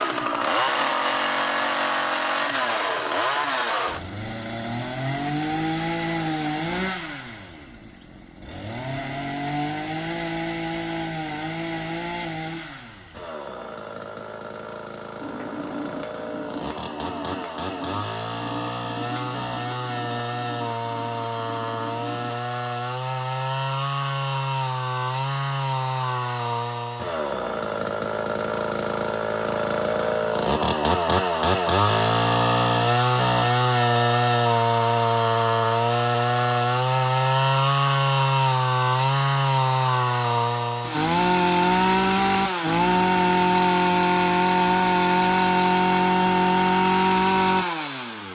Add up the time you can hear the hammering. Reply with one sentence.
You can hear the hammering for 7 seconds altogether.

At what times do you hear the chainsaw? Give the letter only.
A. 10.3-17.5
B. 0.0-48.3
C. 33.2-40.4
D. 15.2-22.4
B.